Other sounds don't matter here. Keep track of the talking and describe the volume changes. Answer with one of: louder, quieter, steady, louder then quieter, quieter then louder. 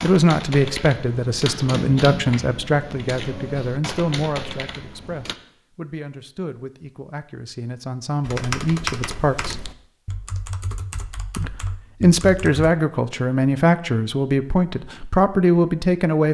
quieter then louder.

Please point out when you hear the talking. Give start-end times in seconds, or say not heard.
0.0-9.7, 11.3-16.2.